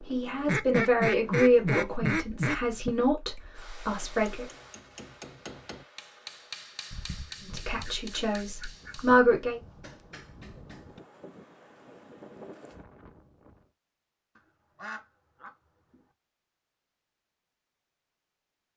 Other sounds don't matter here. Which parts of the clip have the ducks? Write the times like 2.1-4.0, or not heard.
0.5-3.0, 6.9-9.1, 14.3-16.1.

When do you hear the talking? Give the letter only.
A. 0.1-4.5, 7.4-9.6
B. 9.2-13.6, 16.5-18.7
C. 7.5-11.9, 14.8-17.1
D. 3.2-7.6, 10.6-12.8
A.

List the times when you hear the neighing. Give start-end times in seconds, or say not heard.
not heard.